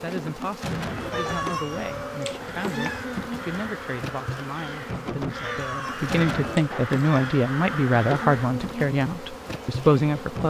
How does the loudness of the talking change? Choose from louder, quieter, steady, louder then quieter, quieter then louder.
louder.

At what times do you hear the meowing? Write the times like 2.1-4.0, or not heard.
1.1-3.0, 5.3-7.3.